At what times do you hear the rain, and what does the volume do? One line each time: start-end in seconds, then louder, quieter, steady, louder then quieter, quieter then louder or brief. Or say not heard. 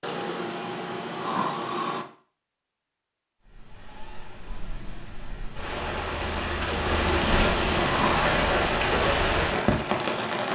3.5-10.4 louder.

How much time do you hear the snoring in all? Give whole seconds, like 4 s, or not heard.
4 s.